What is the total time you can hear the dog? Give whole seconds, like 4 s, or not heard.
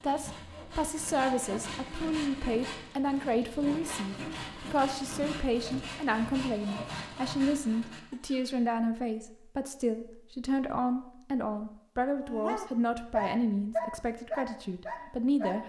3 s.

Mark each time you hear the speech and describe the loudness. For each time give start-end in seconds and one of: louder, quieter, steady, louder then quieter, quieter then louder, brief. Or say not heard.
0.0-15.6 steady.